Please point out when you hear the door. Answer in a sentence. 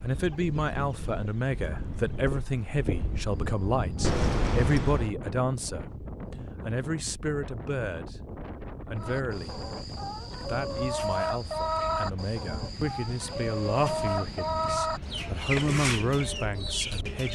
You can hear the door from 4.0 to 5.1 s.